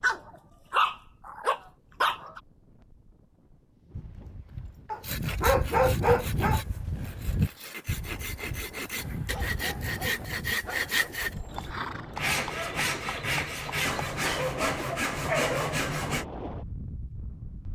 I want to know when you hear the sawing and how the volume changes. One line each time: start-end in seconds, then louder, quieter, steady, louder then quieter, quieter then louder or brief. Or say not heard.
5.0-16.2 louder.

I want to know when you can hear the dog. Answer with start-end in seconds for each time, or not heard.
0.0-2.4, 4.9-6.6, 8.9-10.9, 14.3-15.8.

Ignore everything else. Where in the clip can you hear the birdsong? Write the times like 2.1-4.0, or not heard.
not heard.